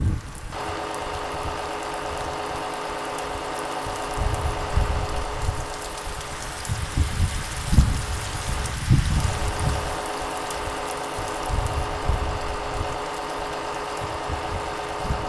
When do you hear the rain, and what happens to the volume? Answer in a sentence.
You can hear the rain from 0.0 to 15.2 s, getting louder then quieter.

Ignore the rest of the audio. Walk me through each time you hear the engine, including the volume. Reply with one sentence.
You can hear the engine from 0.0 to 15.2 s, getting quieter then louder.